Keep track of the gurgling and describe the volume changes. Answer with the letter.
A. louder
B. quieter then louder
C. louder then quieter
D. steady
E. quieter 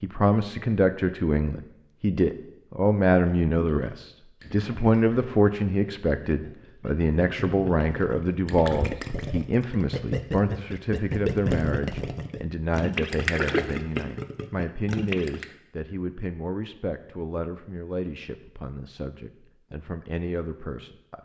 A.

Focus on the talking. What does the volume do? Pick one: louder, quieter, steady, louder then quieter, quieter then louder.
quieter.